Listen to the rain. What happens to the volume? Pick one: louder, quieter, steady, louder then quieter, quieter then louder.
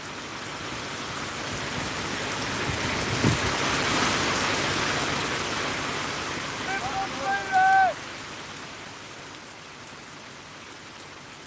louder then quieter.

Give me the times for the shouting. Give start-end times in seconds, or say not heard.
6.7-8.0.